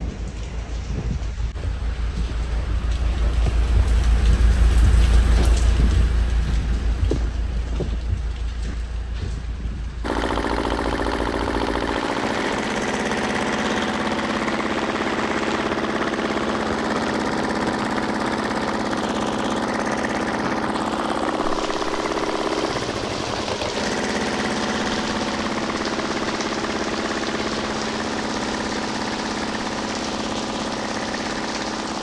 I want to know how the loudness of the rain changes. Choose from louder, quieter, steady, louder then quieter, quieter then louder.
steady.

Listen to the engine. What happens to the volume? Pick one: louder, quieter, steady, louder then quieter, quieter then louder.
steady.